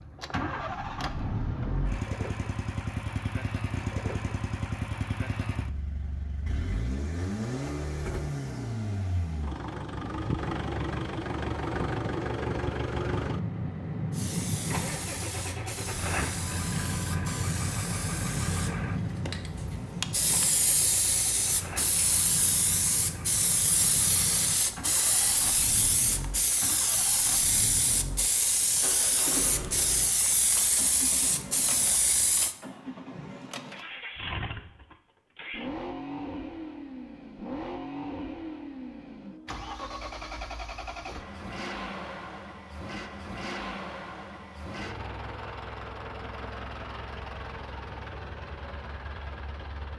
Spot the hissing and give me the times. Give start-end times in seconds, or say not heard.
14.1-32.5.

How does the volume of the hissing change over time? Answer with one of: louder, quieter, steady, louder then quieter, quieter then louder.
louder.